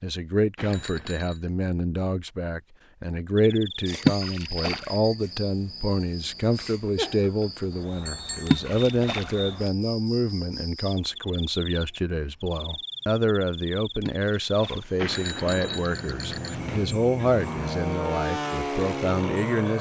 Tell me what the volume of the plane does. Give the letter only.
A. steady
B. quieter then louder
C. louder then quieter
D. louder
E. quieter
D.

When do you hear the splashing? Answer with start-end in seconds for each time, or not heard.
4.0-4.8, 8.4-9.3, 14.0-14.8.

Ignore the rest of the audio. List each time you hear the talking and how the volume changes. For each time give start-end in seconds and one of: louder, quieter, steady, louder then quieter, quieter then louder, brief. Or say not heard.
0.0-19.7 steady.